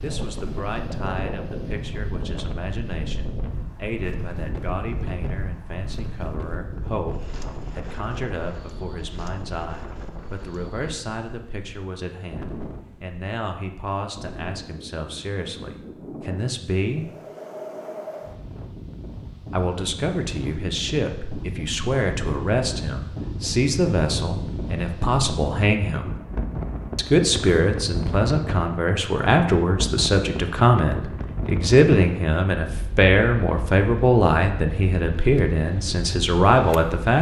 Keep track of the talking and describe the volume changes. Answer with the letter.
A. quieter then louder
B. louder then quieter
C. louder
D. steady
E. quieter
C.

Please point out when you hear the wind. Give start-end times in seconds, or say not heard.
0.0-37.1.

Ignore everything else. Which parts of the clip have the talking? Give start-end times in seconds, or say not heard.
0.0-17.1, 19.5-26.1, 26.9-37.1.